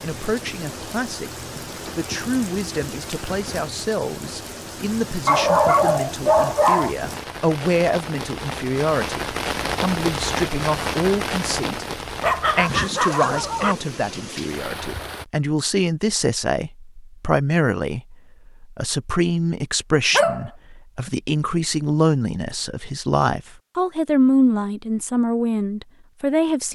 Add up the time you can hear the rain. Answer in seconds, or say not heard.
15 s.